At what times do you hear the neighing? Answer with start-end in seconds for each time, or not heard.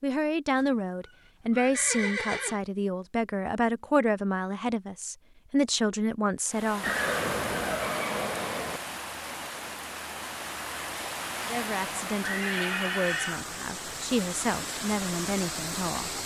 0.6-2.6, 6.8-8.8, 12.2-13.6.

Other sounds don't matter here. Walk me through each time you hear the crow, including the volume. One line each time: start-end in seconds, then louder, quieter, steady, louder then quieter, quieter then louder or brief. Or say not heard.
not heard.